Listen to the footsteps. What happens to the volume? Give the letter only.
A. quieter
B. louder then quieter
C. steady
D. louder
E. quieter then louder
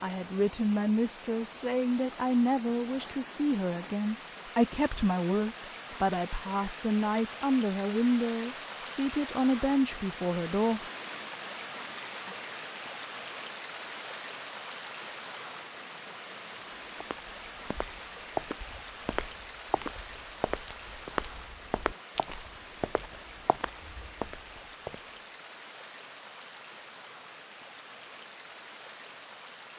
A.